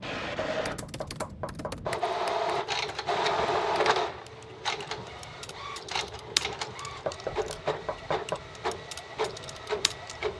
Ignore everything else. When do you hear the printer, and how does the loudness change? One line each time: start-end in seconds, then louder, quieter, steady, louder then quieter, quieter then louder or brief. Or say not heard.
0.0-10.3 louder then quieter.